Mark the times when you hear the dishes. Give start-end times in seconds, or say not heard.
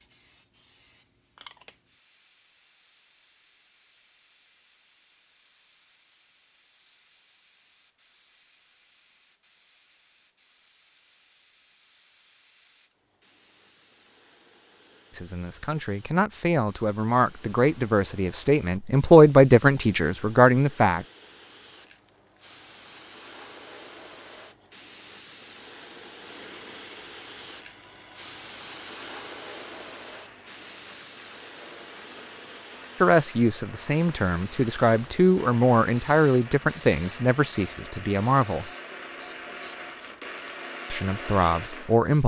not heard.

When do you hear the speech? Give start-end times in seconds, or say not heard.
15.1-21.1, 33.0-38.6, 40.9-42.2.